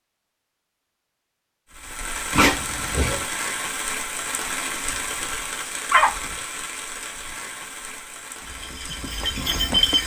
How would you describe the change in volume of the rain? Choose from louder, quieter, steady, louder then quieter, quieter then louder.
quieter.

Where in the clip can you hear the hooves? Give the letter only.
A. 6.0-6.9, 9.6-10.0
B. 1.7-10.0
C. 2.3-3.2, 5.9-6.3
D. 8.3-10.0
D.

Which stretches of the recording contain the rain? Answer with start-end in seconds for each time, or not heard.
1.7-10.0.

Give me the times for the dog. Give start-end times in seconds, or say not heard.
2.3-3.2, 5.9-6.3.